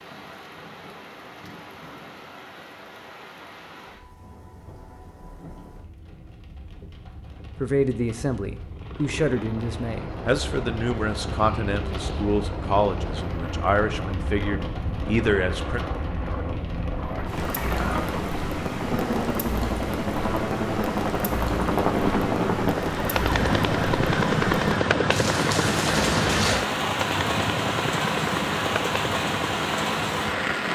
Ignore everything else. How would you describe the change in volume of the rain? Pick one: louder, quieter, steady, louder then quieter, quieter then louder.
louder.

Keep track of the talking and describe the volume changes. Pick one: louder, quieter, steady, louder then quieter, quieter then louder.
steady.